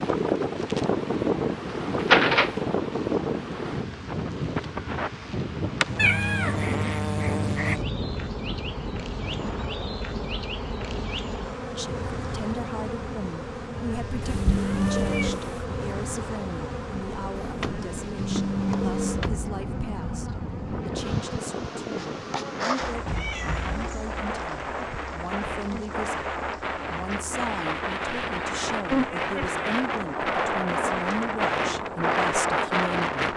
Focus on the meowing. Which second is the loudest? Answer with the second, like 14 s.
6 s.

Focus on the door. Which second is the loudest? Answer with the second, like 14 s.
2 s.